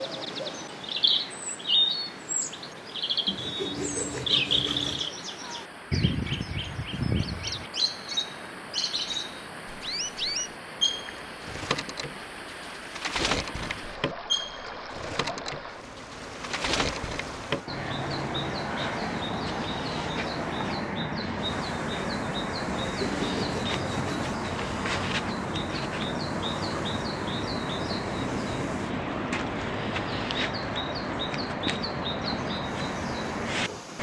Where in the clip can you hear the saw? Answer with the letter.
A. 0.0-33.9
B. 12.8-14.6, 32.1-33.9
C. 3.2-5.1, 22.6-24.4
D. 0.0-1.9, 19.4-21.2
C.